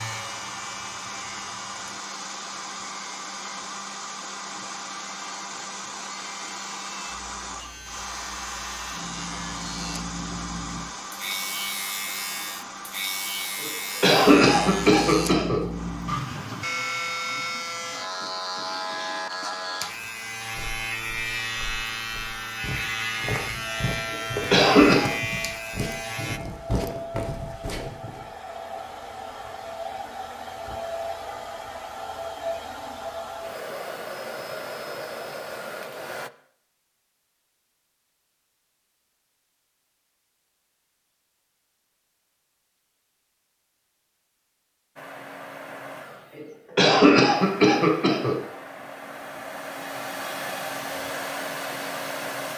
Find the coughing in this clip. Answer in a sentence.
The coughing can be heard from 13.6 to 15.6 s, from 24.1 to 25.1 s and from 46.4 to 48.4 s.